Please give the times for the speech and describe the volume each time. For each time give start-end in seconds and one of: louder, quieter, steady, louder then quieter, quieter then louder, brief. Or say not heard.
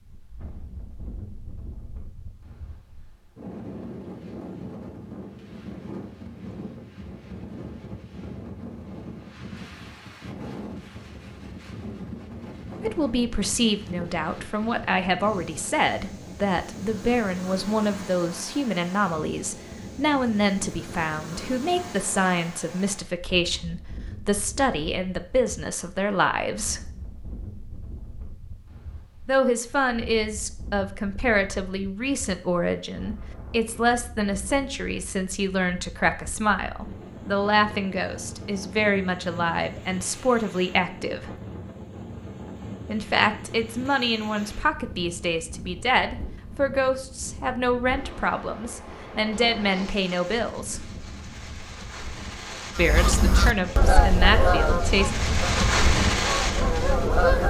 12.8-26.8 steady
29.2-41.3 steady
42.9-50.8 steady
52.8-55.1 brief.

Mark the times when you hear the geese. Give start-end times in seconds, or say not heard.
52.8-57.4.